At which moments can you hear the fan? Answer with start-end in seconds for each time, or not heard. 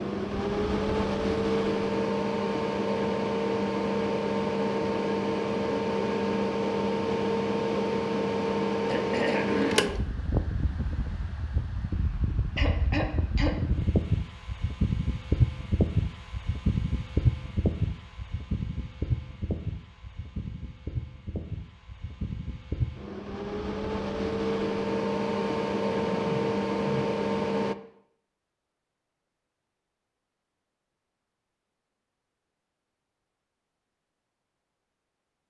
0.0-27.8.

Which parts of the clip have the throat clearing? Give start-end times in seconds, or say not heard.
8.8-9.8, 12.6-13.5, 26.1-27.1.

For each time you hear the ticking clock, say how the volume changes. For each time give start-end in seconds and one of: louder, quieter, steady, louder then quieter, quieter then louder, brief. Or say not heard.
not heard.